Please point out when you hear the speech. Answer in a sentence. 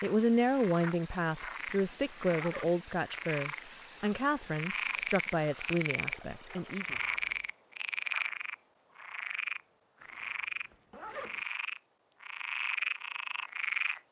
The speech can be heard from 0.0 to 7.0 s.